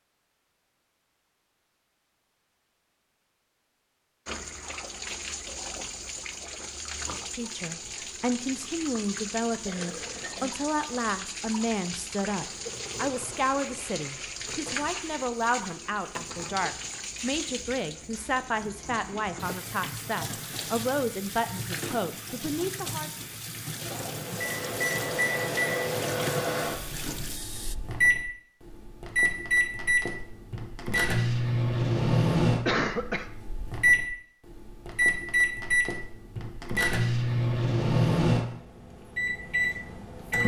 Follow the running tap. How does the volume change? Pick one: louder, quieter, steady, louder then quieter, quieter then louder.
steady.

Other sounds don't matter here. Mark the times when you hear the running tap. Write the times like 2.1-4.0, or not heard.
4.2-27.8.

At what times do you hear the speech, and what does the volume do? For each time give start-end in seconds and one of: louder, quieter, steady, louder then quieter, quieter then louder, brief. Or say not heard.
7.2-23.1 steady.